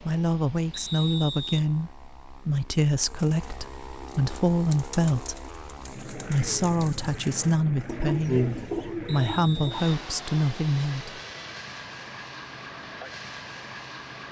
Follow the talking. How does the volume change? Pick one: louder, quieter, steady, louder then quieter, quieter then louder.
steady.